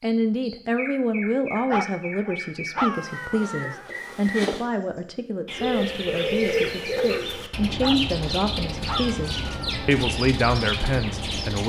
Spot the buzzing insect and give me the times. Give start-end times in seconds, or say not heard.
3.0-4.7.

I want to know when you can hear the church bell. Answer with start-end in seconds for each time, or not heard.
not heard.